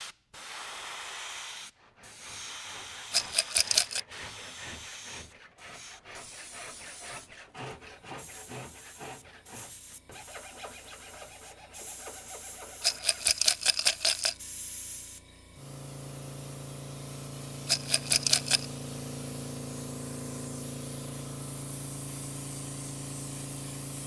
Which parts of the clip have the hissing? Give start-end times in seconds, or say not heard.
0.0-24.0.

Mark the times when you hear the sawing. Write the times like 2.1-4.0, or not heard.
1.7-13.4.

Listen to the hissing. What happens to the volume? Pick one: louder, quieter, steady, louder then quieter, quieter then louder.
quieter then louder.